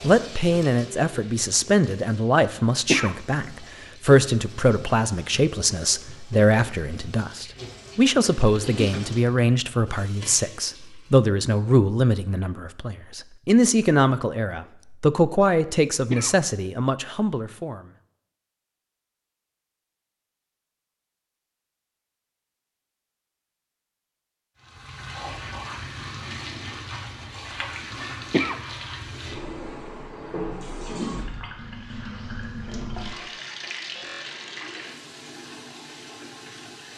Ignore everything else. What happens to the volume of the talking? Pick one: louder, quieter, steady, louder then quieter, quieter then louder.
steady.